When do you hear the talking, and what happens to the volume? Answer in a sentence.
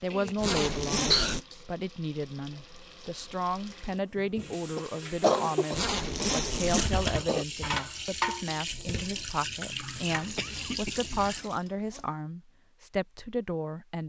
The talking can be heard from 0.0 to 14.0 s, at a steady volume.